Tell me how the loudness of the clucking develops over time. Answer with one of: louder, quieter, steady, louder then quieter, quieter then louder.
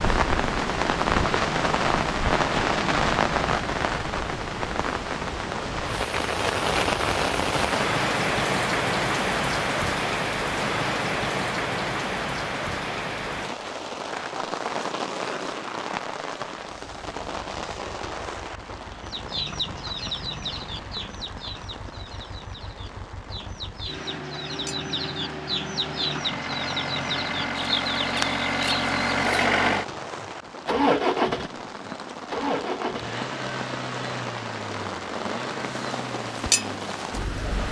quieter then louder.